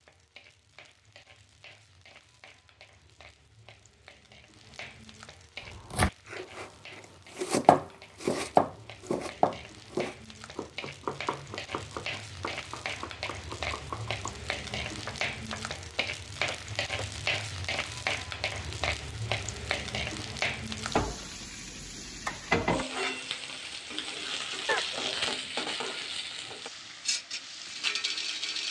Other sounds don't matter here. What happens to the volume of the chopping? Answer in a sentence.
The loudness of the chopping goes down.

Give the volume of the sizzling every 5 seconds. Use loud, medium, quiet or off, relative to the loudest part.
quiet, quiet, medium, loud, loud, loud.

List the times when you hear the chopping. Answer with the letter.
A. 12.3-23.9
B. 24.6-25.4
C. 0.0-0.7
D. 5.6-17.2
D.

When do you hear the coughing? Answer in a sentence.
The coughing can be heard from 24.6 to 25.4 s.